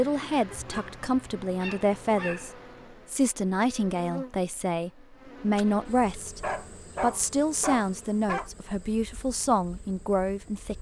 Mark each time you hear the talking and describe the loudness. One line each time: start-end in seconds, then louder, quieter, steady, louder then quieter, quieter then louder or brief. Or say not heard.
0.0-2.5 brief
3.1-10.7 steady.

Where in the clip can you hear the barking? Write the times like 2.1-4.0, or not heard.
0.2-2.5, 5.5-8.5.